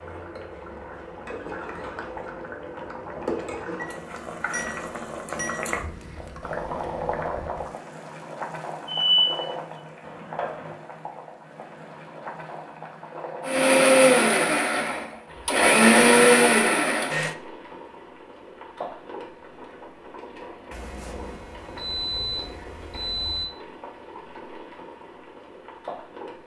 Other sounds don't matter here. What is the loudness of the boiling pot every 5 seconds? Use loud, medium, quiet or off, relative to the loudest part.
loud, loud, medium, medium, medium, medium.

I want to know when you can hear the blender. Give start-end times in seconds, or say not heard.
13.4-17.4.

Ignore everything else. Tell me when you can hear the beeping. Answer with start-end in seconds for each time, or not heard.
3.8-5.7, 9.1-9.5, 20.7-23.5.